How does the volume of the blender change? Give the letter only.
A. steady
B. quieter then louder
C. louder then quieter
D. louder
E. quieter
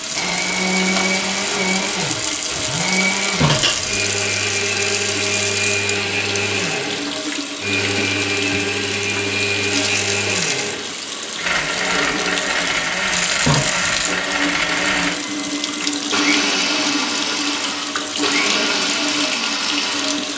A.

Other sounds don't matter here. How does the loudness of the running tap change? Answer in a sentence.
The loudness of the running tap stays about the same.